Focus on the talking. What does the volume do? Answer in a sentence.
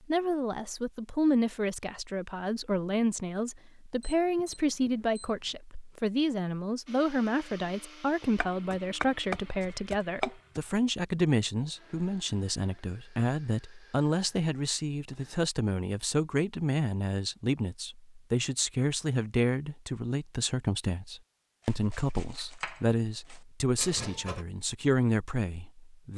The loudness of the talking stays about the same.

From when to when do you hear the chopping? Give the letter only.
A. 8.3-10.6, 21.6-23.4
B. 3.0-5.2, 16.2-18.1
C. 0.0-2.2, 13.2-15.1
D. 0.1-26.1
A.